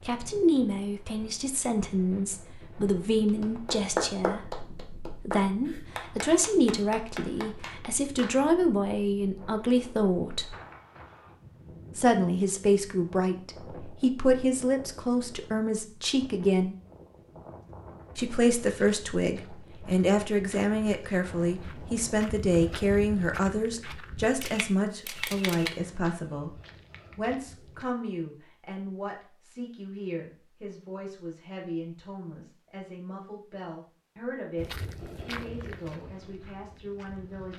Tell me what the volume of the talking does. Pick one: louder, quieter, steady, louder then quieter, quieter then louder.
quieter.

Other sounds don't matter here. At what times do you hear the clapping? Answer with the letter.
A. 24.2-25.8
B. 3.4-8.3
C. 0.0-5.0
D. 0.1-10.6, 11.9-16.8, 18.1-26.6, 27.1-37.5
B.